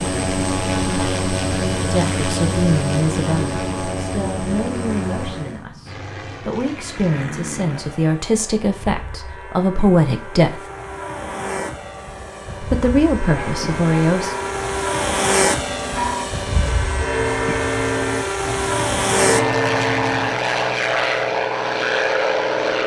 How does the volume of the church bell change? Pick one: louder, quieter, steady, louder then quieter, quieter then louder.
louder.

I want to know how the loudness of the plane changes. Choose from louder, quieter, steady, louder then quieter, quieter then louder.
quieter then louder.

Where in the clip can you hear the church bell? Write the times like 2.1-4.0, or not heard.
13.2-20.4.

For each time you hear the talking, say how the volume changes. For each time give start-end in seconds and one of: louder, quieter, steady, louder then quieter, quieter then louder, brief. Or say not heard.
1.8-10.6 quieter then louder
12.6-14.3 brief.